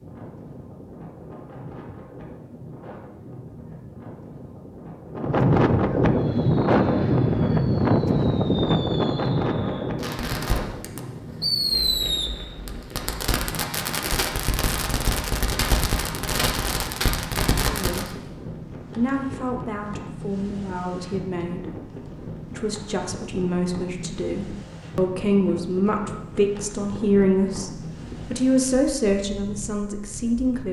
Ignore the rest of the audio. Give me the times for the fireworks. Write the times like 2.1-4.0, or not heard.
6.2-18.1.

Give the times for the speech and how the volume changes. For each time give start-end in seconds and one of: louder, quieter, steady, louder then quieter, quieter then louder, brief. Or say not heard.
17.6-18.1 brief
18.9-30.6 louder.